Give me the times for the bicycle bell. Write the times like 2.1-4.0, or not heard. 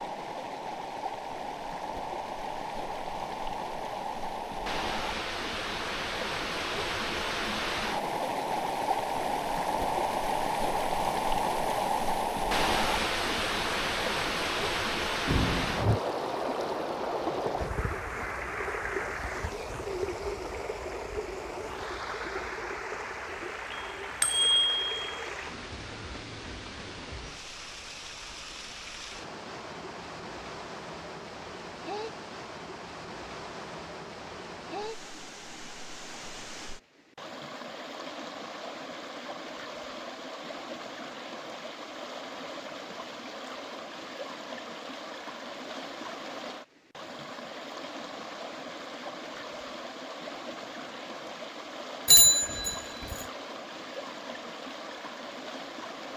15.2-16.0, 23.7-25.2, 52.0-53.1.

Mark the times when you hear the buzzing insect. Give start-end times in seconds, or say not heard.
not heard.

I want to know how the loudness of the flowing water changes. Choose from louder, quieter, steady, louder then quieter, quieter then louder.
quieter.